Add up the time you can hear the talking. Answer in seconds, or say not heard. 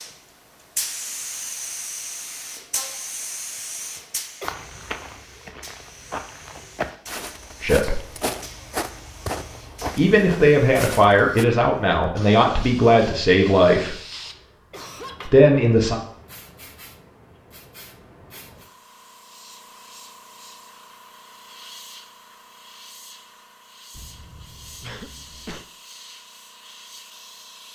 5 s.